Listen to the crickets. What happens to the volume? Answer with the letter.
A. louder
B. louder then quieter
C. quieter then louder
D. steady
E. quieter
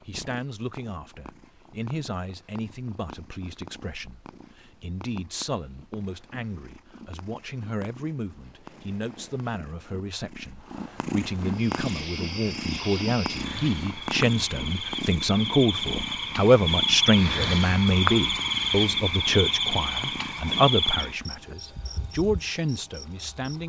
B.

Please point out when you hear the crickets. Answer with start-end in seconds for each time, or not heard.
11.5-23.6.